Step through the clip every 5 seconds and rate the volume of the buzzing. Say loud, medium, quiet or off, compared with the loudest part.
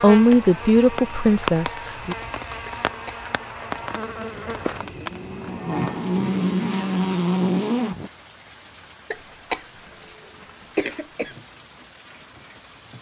medium, loud, off.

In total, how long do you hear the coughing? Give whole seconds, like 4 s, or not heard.
3 s.